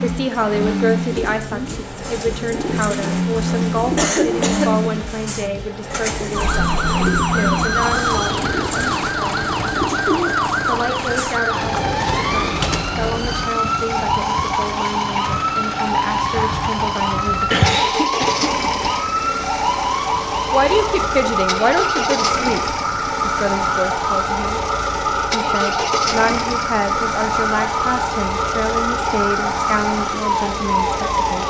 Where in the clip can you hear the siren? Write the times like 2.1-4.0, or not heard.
6.3-31.4.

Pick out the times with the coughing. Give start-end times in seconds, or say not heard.
4.0-4.7, 17.5-19.1.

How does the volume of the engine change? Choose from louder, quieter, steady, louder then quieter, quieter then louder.
steady.